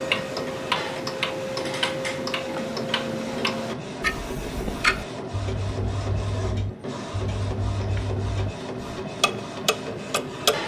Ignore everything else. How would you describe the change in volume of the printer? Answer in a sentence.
The volume of the printer stays about the same.